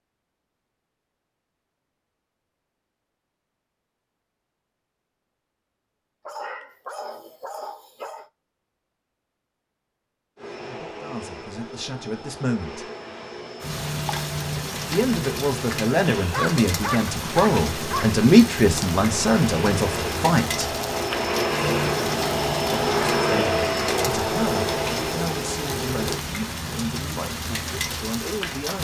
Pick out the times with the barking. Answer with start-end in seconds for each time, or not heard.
6.2-8.2, 16.3-18.2.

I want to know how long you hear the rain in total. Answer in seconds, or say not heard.
15 s.